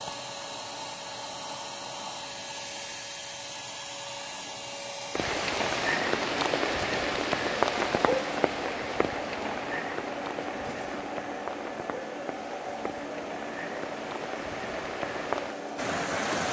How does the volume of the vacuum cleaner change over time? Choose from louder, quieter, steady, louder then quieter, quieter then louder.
steady.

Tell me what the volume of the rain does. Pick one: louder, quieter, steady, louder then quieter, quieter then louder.
quieter then louder.